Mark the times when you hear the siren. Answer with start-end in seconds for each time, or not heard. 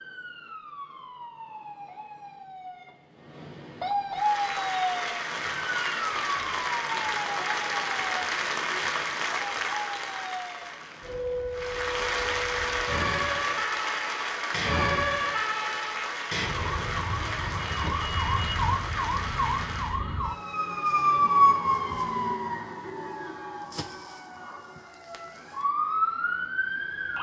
0.0-27.1.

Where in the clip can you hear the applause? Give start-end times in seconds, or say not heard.
4.1-20.0.